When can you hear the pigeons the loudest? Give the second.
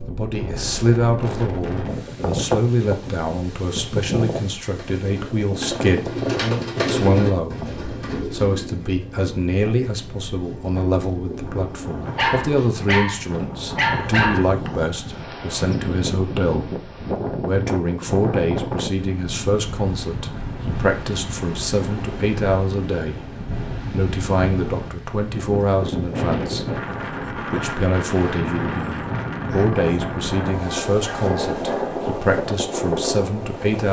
6 s.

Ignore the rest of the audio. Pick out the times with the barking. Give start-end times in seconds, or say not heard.
12.2-14.5, 29.6-32.1.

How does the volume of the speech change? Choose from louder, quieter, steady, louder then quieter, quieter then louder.
steady.